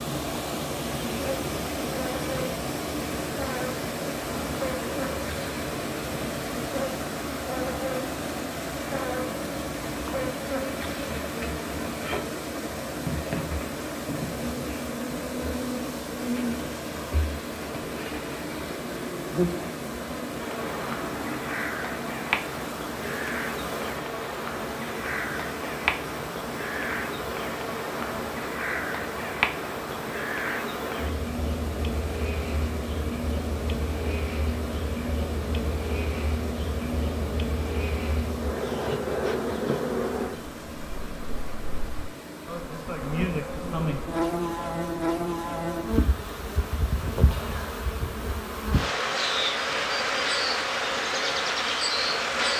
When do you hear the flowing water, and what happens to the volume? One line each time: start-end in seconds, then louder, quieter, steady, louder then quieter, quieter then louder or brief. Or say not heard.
0.0-52.5 quieter.